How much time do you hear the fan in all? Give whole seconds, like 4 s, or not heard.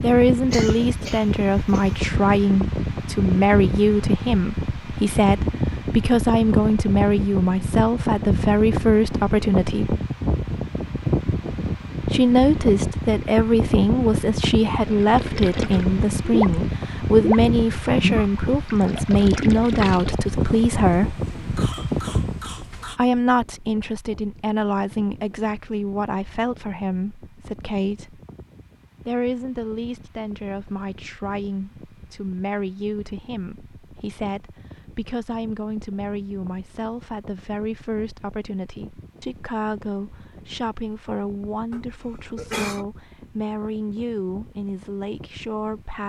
46 s.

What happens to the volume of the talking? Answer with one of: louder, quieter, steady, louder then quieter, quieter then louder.
quieter.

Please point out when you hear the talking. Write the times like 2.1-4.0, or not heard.
0.0-9.9, 12.1-21.2, 22.9-28.2, 29.1-46.0.